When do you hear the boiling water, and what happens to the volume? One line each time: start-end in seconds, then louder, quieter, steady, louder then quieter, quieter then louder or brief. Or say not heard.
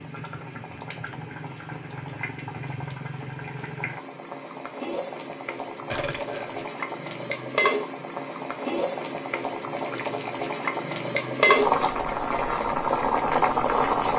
0.0-14.1 louder.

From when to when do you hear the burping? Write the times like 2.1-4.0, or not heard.
5.9-6.7.